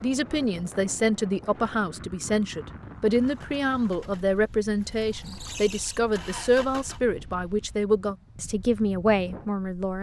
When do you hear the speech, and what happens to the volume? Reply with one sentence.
The speech can be heard from 0.0 to 9.9 s, at a steady volume.